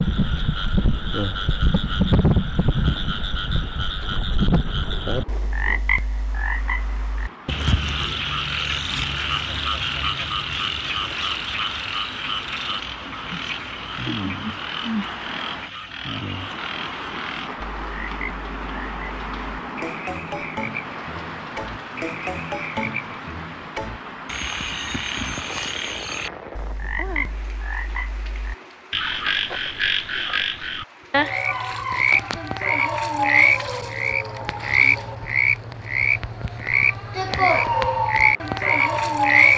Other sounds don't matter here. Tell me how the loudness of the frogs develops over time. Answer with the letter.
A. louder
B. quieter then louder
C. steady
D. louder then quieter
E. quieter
B.